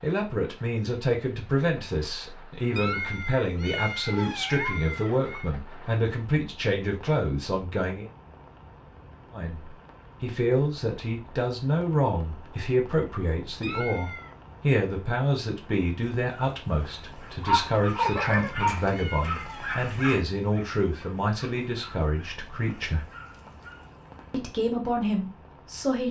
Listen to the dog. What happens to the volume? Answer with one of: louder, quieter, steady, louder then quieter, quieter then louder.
quieter.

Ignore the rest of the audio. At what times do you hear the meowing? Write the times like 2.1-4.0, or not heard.
2.8-5.5, 13.6-14.3, 18.1-19.9.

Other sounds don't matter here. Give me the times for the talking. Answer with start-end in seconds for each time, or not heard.
0.0-8.1, 9.3-23.1, 24.3-26.0.